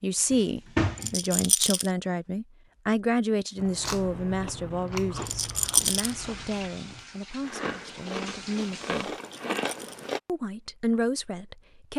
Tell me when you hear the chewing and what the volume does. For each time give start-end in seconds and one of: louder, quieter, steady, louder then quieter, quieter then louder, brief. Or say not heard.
3.5-10.2 quieter then louder.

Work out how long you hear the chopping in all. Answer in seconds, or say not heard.
not heard.